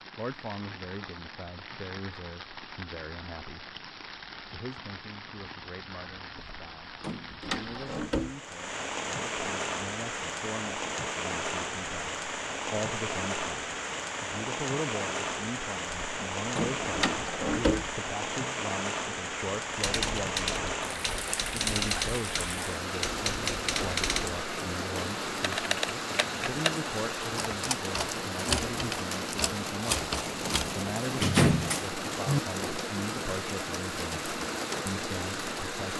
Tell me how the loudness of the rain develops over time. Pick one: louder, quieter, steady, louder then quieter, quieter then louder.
louder.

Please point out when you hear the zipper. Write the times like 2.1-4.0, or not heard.
not heard.